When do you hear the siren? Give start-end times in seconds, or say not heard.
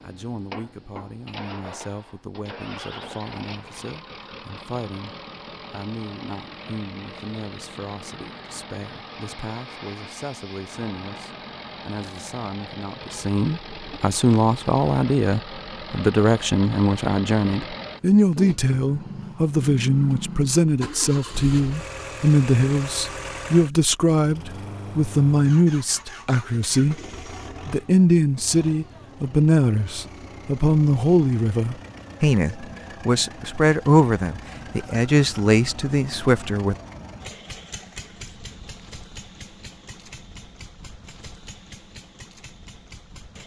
not heard.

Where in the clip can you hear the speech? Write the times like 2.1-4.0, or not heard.
0.0-26.9, 27.6-36.8.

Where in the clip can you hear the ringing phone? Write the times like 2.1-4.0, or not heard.
not heard.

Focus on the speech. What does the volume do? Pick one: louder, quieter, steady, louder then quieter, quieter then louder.
louder.